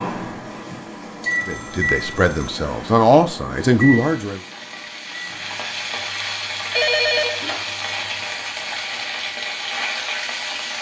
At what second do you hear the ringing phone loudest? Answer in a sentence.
The volume of the ringing phone peaks at 7 seconds.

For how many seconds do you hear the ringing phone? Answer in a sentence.
The ringing phone can be heard for 2 seconds in total.